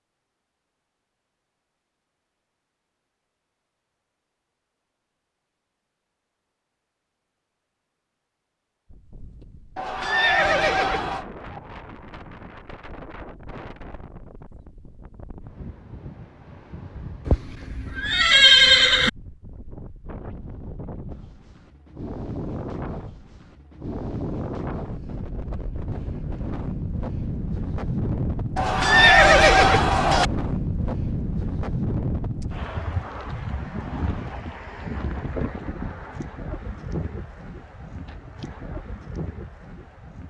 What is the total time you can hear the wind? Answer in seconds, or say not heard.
31 s.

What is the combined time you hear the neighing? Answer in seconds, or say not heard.
5 s.